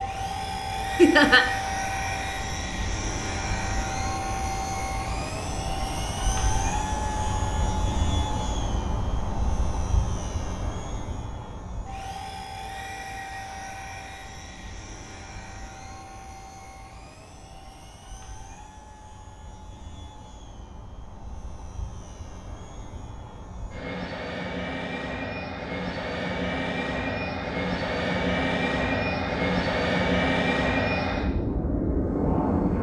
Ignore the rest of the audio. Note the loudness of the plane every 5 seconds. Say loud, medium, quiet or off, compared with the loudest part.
medium, medium, quiet, quiet, quiet, loud, loud.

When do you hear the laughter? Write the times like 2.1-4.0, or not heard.
0.9-1.4.